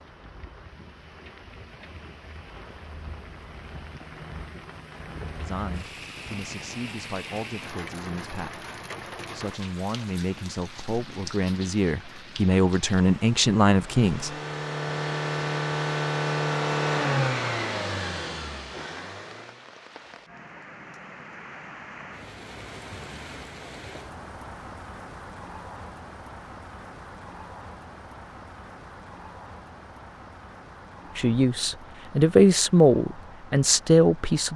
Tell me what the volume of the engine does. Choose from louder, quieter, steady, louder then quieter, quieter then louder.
louder then quieter.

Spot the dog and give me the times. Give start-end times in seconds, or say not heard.
not heard.